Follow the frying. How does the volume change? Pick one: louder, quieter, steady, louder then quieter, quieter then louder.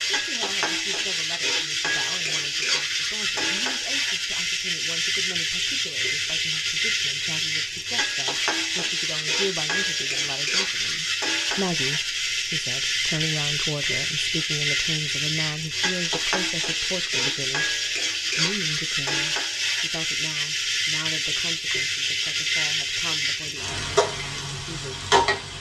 steady.